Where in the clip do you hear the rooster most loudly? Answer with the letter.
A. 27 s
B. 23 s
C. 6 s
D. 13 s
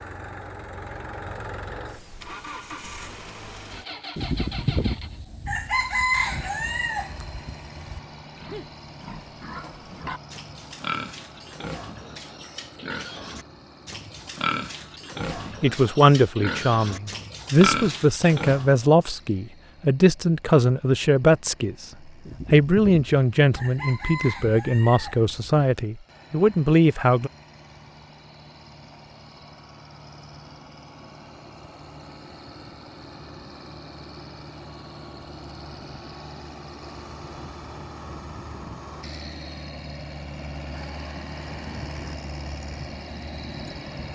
C.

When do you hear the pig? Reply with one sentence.
The pig can be heard from 8.3 to 18.8 s.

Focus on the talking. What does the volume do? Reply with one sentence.
The loudness of the talking stays about the same.